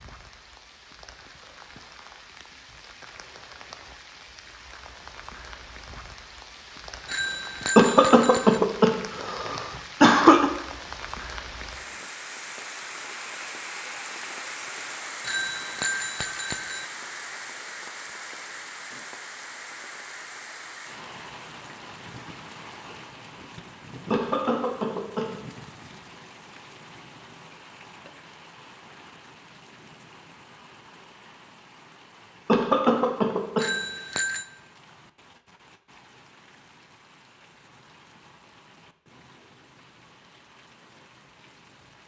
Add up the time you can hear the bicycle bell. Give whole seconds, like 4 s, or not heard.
4 s.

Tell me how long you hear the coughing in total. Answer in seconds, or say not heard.
5 s.